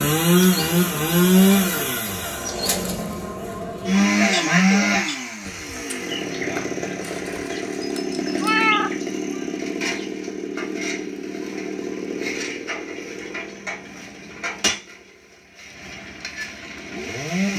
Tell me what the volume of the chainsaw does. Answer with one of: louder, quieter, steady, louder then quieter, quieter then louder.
quieter.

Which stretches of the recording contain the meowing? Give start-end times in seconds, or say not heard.
8.4-9.4.